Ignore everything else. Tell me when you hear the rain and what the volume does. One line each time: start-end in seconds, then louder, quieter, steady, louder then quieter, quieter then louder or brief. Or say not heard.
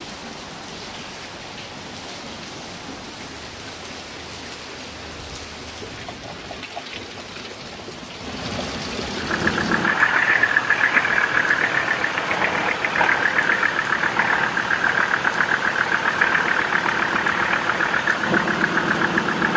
0.0-19.5 louder.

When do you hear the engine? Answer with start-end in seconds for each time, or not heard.
9.2-19.5.